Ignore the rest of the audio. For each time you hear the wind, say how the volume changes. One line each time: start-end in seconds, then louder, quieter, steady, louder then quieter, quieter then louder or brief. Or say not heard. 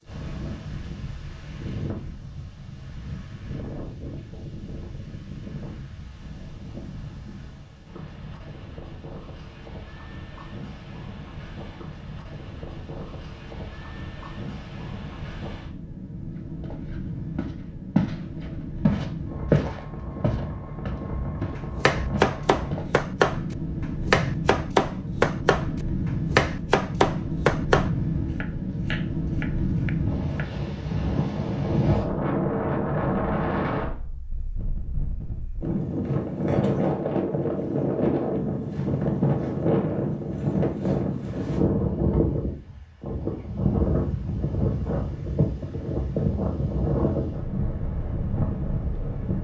0.0-49.3 louder.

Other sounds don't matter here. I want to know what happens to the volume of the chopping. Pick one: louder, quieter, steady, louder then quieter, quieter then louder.
quieter.